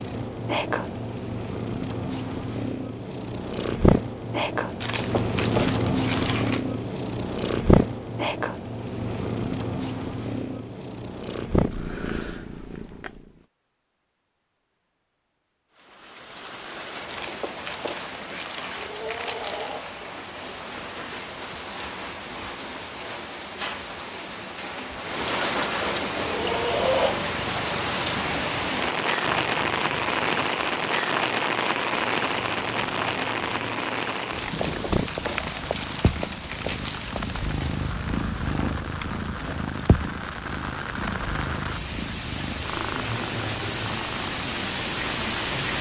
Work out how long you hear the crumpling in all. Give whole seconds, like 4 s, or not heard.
7 s.